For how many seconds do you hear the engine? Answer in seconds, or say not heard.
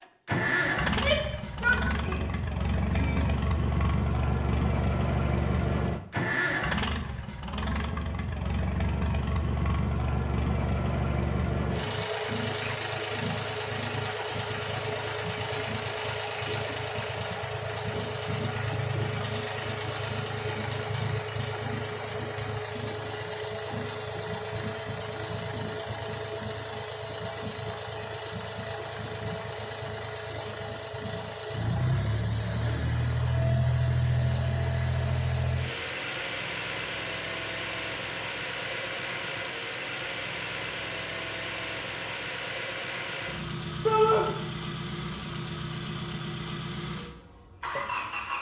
48 s.